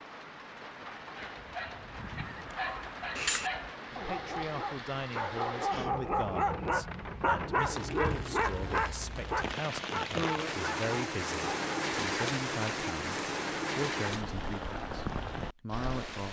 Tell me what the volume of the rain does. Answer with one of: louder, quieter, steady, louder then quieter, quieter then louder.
louder.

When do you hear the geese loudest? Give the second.
3 s.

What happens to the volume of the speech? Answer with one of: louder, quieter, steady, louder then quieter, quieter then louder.
steady.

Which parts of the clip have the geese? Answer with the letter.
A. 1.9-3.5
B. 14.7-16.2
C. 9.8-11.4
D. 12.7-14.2
A.